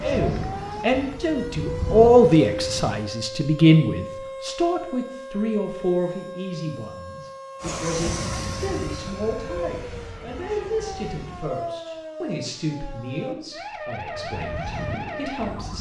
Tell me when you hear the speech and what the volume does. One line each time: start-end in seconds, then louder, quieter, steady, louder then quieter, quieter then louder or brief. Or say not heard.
0.0-15.7 quieter.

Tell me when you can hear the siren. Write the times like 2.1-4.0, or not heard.
0.0-15.7.